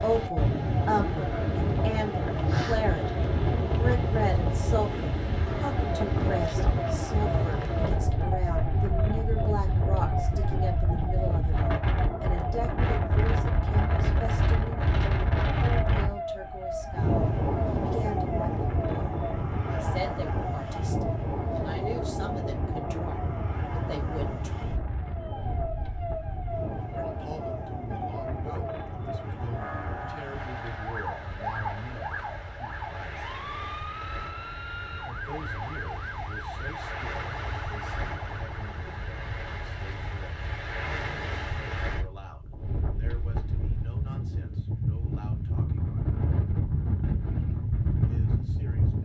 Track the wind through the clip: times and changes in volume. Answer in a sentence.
The wind can be heard from 0.0 to 48.9 s, getting quieter then louder.